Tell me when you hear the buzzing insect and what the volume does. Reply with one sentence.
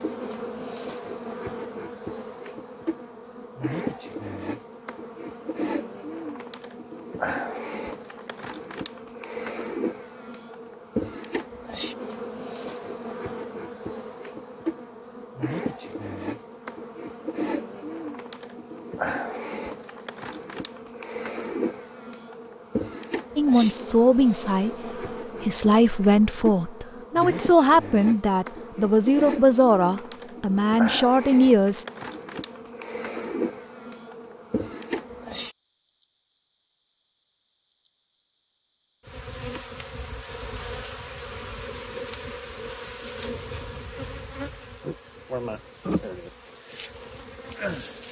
The buzzing insect can be heard from 0.0 to 48.0 s, at a steady volume.